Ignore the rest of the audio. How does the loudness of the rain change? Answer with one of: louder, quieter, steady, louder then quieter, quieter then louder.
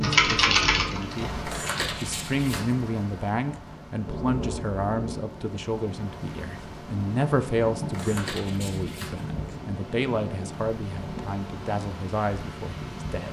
steady.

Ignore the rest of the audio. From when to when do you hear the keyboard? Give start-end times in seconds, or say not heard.
0.0-1.9.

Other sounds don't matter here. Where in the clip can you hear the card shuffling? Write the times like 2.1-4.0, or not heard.
1.4-2.8, 7.9-9.3.